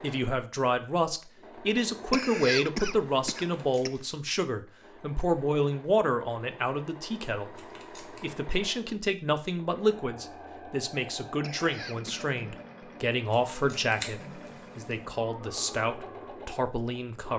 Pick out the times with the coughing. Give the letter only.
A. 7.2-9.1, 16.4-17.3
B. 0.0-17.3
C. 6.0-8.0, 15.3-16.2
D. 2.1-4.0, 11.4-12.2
D.